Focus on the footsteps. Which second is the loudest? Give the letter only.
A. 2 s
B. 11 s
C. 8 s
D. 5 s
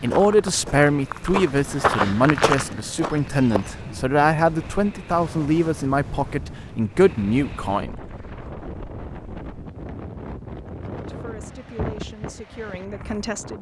A.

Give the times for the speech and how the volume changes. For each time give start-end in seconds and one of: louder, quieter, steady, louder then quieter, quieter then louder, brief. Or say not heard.
0.0-8.0 steady
11.0-13.5 brief.